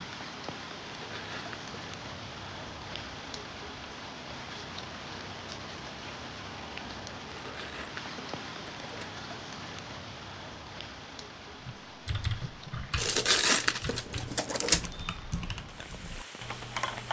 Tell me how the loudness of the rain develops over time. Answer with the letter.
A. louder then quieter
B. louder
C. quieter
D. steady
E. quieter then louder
C.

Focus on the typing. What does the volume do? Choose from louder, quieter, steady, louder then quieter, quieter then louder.
quieter.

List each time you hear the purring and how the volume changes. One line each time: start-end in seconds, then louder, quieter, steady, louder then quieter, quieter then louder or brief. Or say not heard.
not heard.